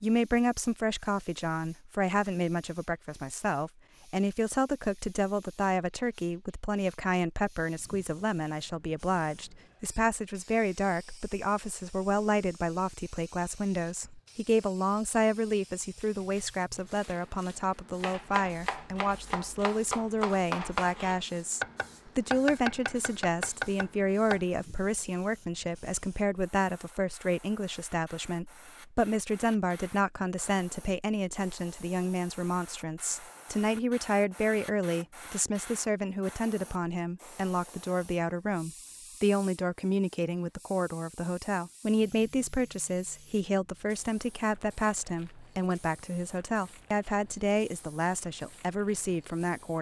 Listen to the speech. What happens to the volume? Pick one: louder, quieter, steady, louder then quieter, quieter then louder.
steady.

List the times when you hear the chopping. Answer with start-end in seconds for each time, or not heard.
18.0-24.4.